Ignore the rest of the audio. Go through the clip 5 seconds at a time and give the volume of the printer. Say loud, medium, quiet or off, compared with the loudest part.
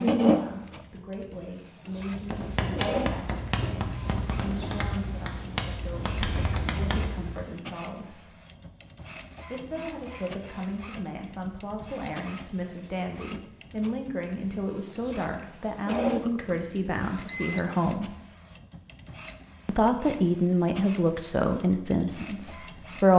loud, quiet, quiet, medium, quiet.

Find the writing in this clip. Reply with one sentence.
The writing can be heard from 2.0 to 7.5 s.